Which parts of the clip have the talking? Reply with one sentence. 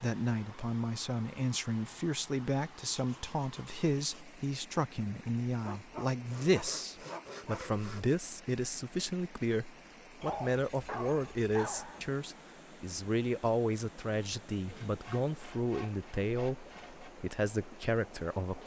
The talking can be heard from 0.0 to 18.6 s.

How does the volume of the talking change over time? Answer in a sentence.
The loudness of the talking stays about the same.